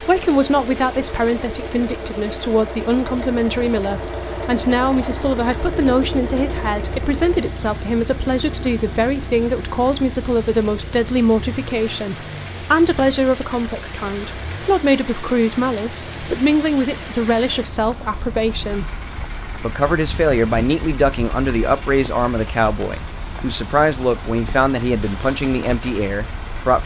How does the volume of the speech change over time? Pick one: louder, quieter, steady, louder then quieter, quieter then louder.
steady.